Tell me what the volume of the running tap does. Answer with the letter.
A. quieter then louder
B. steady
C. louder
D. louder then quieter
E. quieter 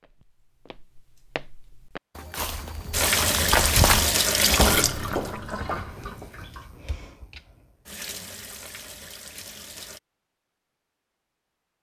E.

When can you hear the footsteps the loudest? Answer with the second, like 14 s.
4 s.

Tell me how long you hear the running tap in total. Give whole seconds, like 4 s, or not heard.
7 s.